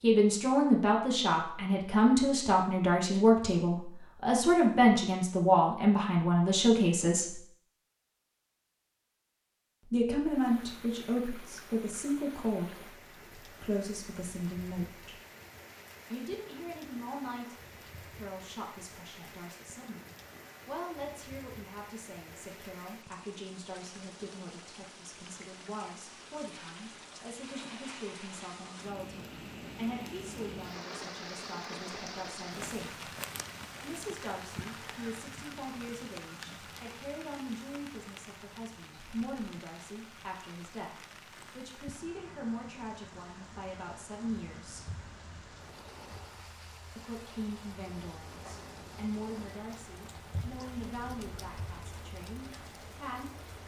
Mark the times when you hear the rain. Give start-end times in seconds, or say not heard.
10.2-53.6.